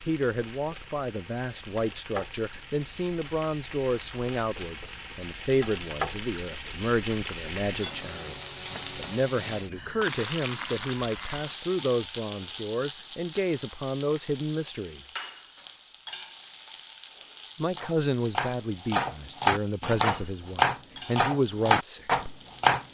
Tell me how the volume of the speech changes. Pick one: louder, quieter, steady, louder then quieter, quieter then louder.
steady.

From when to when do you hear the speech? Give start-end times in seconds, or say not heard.
0.0-15.0, 17.6-22.1.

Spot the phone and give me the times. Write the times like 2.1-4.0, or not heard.
not heard.